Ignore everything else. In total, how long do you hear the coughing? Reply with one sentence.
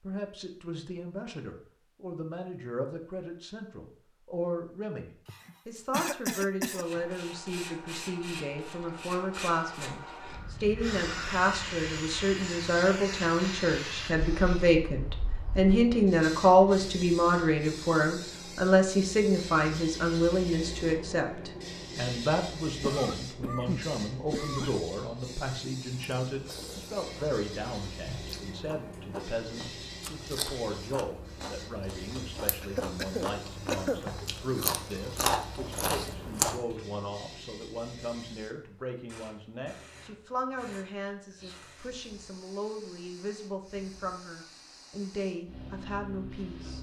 You can hear the coughing for 5 seconds altogether.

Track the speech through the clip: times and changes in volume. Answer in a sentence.
You can hear the speech from 0.0 to 46.7 s, getting louder then quieter.